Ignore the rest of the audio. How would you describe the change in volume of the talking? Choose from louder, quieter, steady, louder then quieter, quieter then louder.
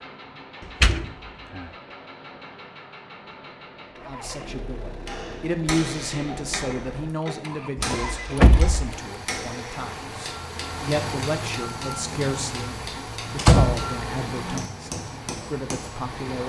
quieter.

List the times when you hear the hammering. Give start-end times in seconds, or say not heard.
5.0-16.0.